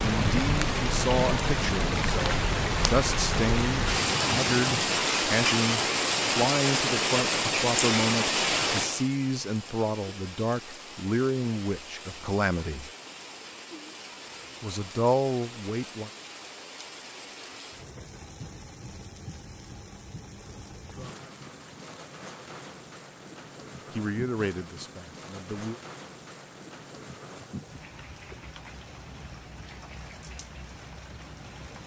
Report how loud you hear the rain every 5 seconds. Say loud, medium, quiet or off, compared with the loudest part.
loud, loud, quiet, quiet, quiet, quiet, quiet.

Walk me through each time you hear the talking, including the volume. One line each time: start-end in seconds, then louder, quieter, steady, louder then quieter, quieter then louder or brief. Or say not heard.
0.0-12.9 steady
14.6-16.1 brief
23.9-25.8 brief.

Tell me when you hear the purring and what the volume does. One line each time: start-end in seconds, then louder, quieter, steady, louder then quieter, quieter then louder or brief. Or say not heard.
not heard.